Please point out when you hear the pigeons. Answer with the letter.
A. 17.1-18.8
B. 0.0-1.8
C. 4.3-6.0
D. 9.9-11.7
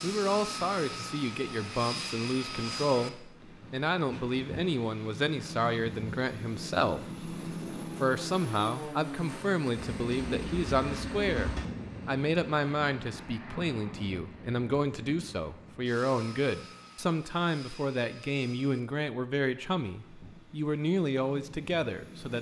D.